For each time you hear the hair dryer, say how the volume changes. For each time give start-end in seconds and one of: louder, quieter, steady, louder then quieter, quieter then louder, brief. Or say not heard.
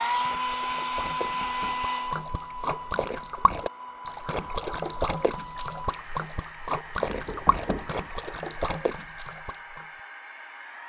0.0-10.8 quieter.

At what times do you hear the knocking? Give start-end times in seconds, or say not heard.
1.2-1.9, 7.0-8.0.